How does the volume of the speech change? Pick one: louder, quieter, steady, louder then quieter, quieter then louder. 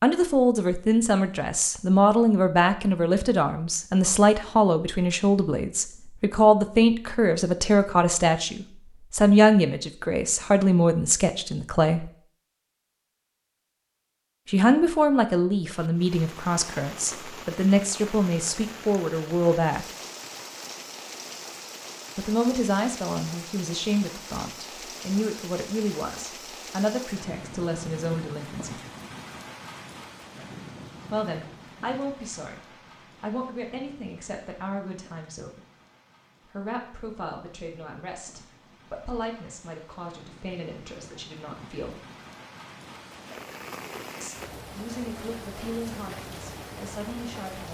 quieter.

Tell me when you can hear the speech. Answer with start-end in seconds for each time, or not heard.
0.0-12.1, 14.4-19.9, 22.1-28.8, 31.1-35.6, 36.5-42.0, 44.2-47.6.